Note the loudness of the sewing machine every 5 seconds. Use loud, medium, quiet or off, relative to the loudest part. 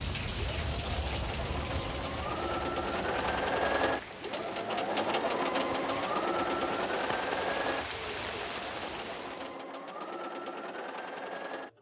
loud, loud, medium.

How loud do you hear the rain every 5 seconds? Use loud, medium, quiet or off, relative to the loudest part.
loud, loud, off.